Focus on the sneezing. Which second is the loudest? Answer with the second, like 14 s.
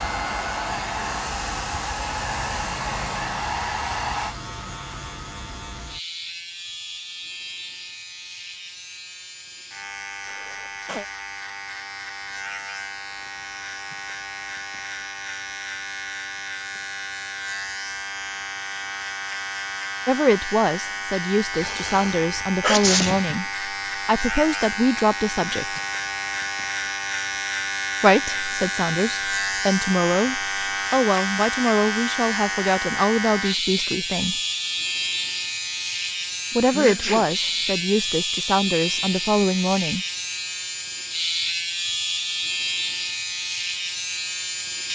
23 s.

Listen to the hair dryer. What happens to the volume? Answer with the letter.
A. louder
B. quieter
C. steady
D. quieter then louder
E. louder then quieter
C.